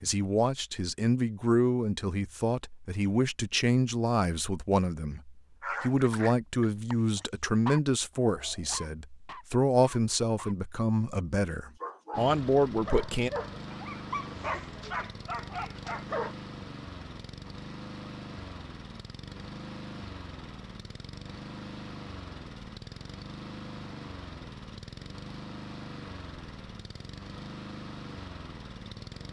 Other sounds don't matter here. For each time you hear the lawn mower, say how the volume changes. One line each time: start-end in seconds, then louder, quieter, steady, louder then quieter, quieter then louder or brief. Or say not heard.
12.1-29.2 steady.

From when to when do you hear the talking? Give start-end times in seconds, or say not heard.
0.0-13.3.